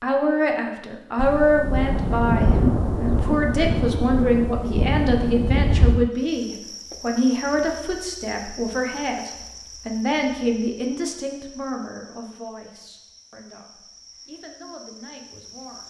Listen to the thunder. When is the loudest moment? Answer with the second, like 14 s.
3 s.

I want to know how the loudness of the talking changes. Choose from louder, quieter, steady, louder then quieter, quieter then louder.
quieter.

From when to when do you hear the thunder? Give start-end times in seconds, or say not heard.
1.1-6.1.